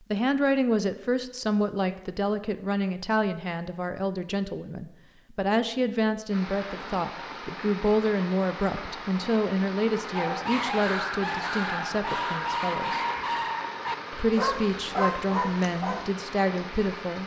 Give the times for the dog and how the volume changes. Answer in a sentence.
You can hear the dog from 10.1 to 16.1 s, at a steady volume.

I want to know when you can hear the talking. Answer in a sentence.
The talking can be heard from 0.1 to 13.0 s and from 14.1 to 17.2 s.